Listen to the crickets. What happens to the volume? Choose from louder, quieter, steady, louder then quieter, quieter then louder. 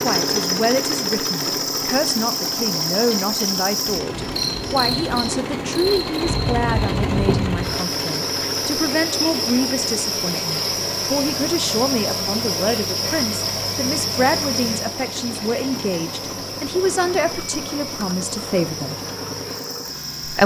quieter.